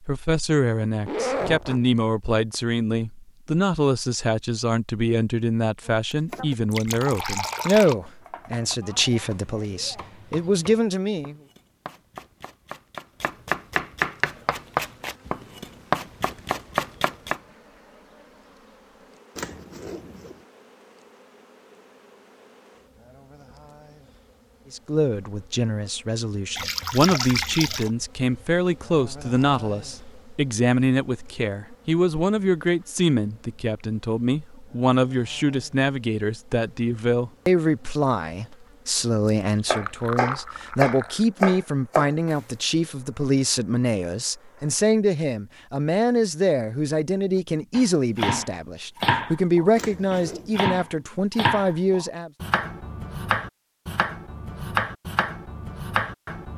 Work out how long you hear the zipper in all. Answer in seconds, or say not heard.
3 s.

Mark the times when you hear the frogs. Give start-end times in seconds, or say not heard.
not heard.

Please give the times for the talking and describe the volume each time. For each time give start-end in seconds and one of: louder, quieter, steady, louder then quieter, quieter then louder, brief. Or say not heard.
0.0-11.3 steady
24.7-52.3 steady.